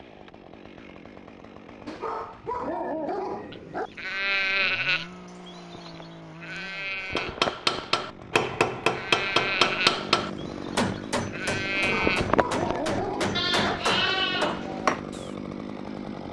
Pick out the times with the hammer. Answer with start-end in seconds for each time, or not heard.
7.2-15.1.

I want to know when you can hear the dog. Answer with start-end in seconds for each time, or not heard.
1.9-3.9, 11.8-13.8.